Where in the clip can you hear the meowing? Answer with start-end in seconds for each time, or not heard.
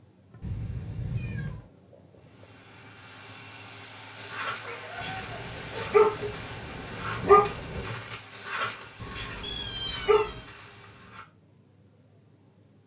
0.4-1.6, 4.6-6.3, 8.9-10.5.